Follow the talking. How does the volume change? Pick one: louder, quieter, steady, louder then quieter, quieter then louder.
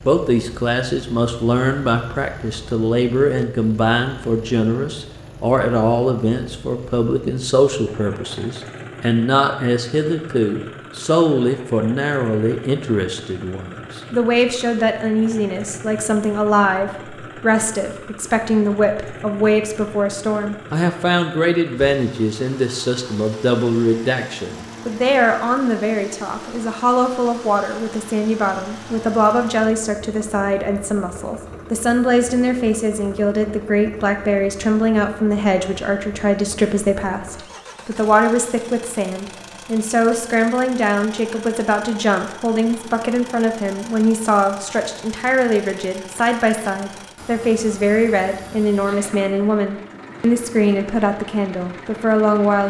steady.